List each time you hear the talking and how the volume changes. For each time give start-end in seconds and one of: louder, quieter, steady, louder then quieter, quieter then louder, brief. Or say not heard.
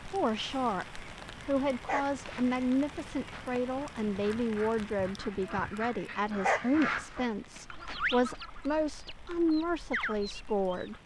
0.0-11.0 steady.